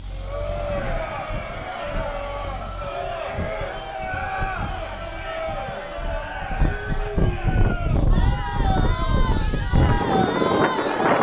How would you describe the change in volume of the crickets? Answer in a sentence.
The loudness of the crickets goes down, then up.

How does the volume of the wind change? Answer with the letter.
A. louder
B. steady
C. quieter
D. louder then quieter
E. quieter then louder
A.